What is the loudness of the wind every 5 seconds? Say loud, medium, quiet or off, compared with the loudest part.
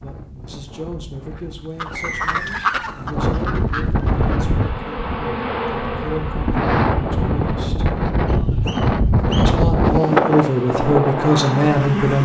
medium, loud, loud.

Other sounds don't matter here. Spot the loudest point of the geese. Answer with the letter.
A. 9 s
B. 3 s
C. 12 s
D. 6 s
B.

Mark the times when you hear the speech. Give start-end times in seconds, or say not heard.
0.0-7.9, 9.4-12.2.